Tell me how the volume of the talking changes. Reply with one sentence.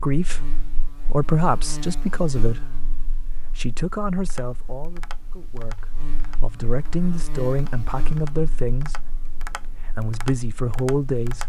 The loudness of the talking goes down, then up.